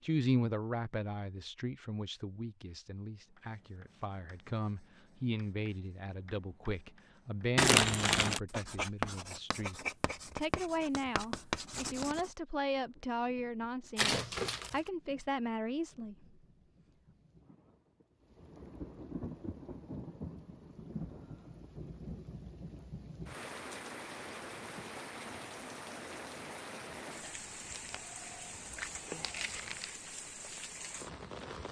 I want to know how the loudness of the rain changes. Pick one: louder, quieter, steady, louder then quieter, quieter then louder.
louder.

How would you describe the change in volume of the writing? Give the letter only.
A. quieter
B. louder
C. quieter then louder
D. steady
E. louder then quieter
B.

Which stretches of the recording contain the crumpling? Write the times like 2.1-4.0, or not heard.
7.5-8.4, 13.9-14.8, 27.2-29.9.